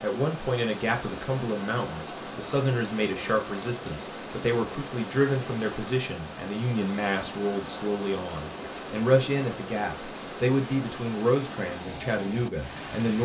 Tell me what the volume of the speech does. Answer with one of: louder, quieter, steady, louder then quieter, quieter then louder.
steady.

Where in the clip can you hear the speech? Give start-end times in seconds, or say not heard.
0.0-13.2.